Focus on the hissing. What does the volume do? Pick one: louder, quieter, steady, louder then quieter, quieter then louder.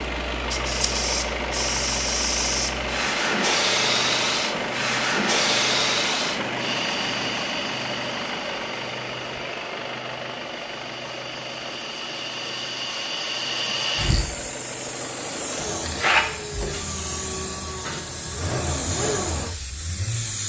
quieter then louder.